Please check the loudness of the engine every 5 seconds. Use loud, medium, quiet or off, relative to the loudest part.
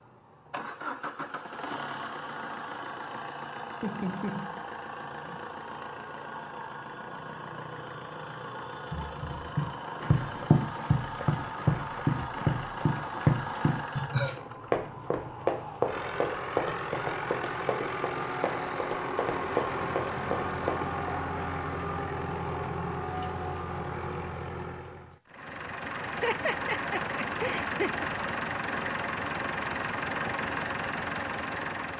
medium, medium, medium, loud, loud, loud, loud.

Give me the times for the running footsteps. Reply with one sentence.
The running footsteps can be heard from 8.9 to 21.1 s.